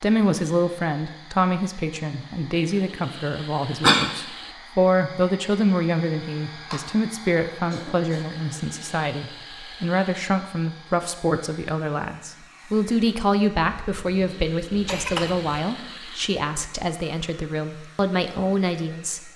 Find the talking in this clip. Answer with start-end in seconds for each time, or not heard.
0.0-19.3.